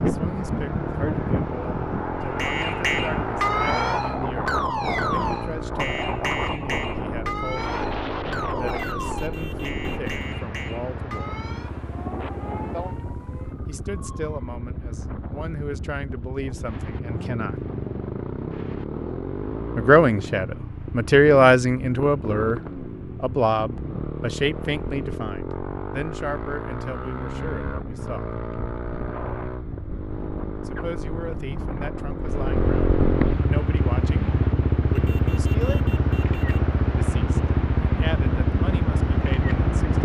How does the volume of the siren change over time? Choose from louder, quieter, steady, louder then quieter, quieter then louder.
quieter.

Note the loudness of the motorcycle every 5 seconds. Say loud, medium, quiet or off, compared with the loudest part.
medium, medium, quiet, medium, medium, medium, loud, loud.